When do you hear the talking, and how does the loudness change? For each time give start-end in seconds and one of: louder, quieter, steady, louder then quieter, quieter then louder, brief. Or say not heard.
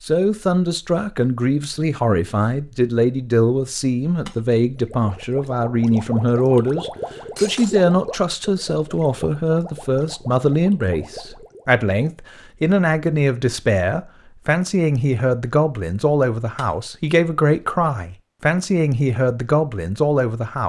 0.0-20.6 steady.